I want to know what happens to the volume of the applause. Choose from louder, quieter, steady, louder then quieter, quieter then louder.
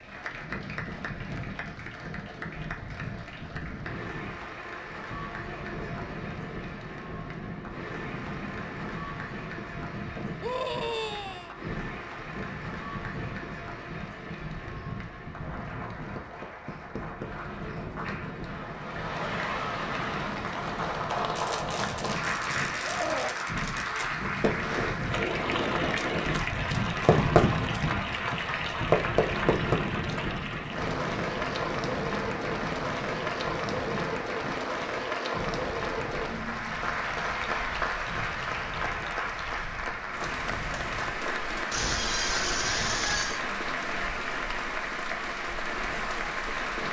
louder.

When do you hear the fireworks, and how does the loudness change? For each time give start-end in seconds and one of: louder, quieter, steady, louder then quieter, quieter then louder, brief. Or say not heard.
21.4-30.0 louder.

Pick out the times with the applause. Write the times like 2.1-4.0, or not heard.
0.0-46.8.